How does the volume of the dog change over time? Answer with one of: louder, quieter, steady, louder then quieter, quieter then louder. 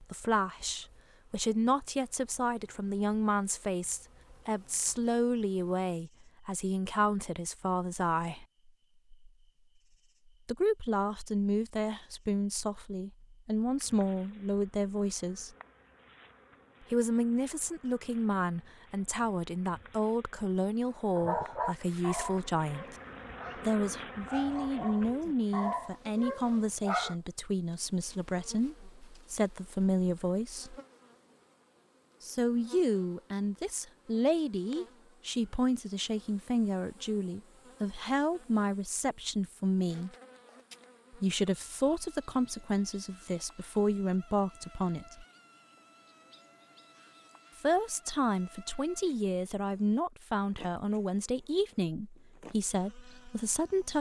quieter then louder.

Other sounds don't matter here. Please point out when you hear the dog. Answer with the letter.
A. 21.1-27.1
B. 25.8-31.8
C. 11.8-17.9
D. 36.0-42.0
A.